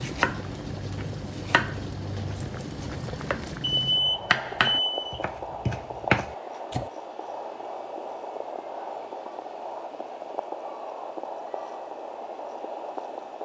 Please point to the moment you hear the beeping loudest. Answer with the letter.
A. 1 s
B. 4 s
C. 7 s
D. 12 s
B.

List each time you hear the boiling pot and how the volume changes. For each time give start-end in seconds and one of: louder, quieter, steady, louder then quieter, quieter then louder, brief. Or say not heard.
0.0-13.4 steady.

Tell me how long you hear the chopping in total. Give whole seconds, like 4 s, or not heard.
7 s.